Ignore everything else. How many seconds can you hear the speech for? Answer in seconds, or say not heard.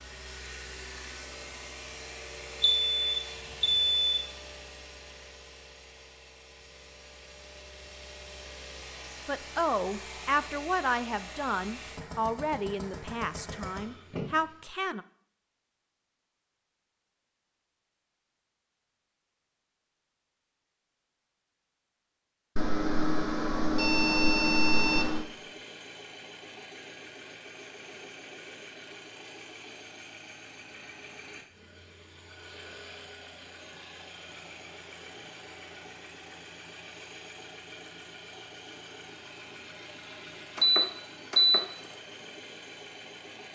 6 s.